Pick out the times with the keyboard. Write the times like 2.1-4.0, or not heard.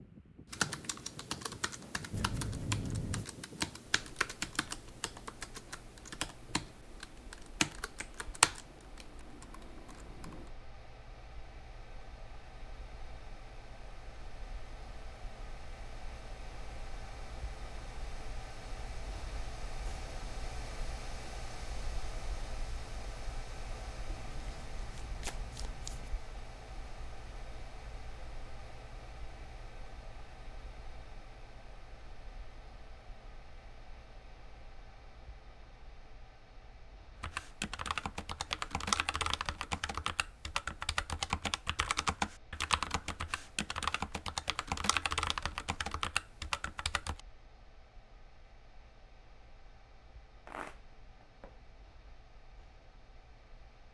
0.5-10.5, 37.2-47.2.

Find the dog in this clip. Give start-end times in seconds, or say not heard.
not heard.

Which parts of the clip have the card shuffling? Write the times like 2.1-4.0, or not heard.
2.1-3.2, 24.1-26.1, 50.5-51.5.